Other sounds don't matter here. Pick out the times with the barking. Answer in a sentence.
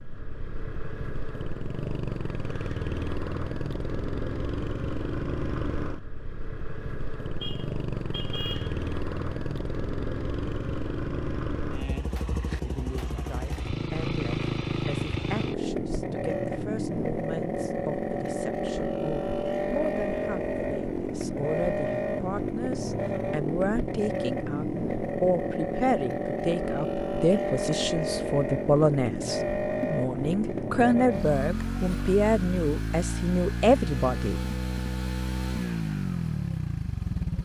The barking can't be heard in this clip.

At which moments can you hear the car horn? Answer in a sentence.
You can hear the car horn from 7.4 to 8.8 s.